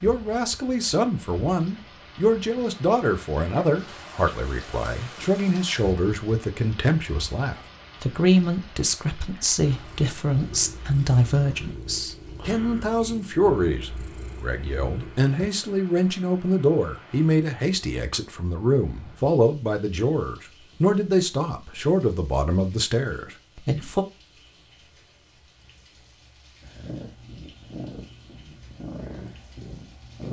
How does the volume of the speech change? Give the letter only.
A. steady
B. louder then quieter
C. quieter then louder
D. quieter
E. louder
A.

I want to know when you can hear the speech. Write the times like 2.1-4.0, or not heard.
0.0-24.1.